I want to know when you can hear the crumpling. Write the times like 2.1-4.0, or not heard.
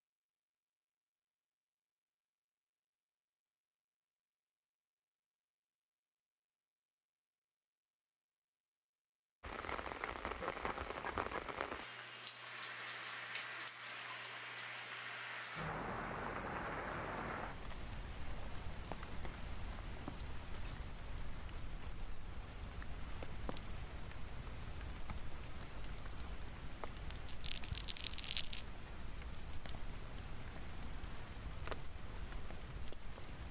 27.2-28.6.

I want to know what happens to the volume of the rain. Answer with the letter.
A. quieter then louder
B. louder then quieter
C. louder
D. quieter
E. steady
D.